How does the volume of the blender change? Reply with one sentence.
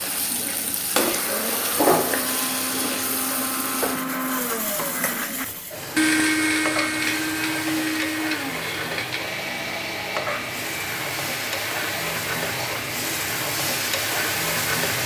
The volume of the blender goes up, then down.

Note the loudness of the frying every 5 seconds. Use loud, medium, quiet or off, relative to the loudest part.
loud, medium, loud.